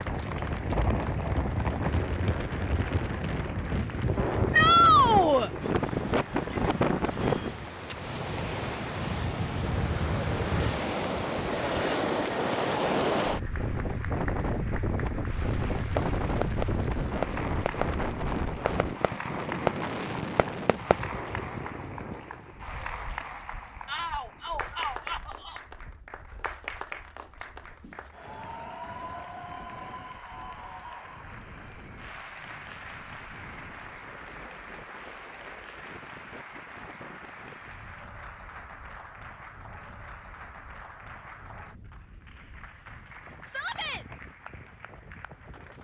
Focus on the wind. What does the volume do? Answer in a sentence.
The loudness of the wind goes down.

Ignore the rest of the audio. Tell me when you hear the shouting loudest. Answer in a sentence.
The loudest moment of the shouting is at 5 seconds.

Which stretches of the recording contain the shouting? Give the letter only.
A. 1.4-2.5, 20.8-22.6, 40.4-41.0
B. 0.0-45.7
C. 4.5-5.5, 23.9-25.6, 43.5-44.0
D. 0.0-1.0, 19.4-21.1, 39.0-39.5
C.